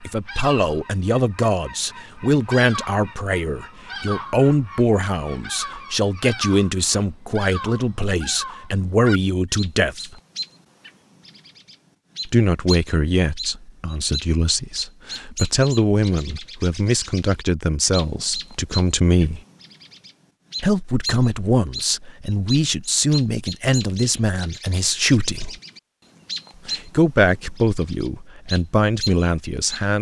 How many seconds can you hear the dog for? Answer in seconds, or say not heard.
not heard.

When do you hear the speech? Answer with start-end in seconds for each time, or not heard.
0.0-10.2, 12.2-19.4, 20.6-25.6, 26.6-29.9.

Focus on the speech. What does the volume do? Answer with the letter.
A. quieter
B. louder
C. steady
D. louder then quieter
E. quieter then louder
C.